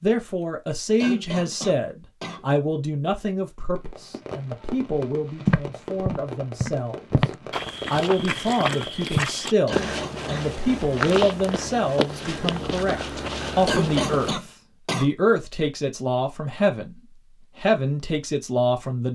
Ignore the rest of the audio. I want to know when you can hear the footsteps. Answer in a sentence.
You can hear the footsteps from 5.5 to 14.4 s.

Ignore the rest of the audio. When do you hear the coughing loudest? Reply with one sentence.
The volume of the coughing peaks at 14 seconds.